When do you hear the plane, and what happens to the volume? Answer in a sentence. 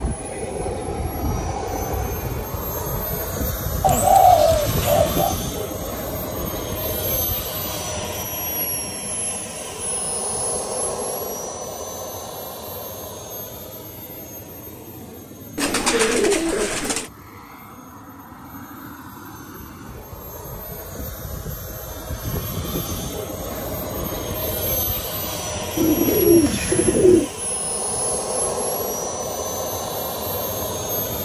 The plane can be heard from 0.0 to 31.2 s, getting quieter then louder.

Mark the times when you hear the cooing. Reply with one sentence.
You can hear the cooing from 3.8 to 5.3 s, from 15.6 to 17.1 s and from 25.8 to 27.3 s.